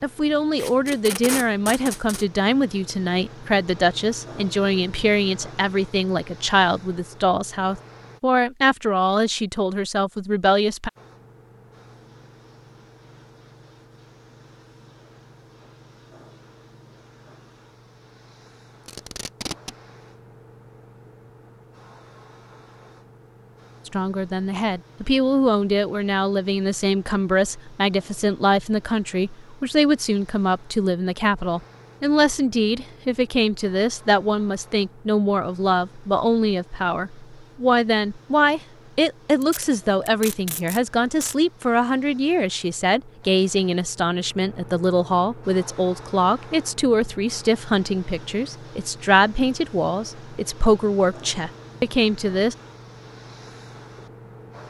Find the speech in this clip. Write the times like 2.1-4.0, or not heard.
0.0-10.9, 23.9-52.5.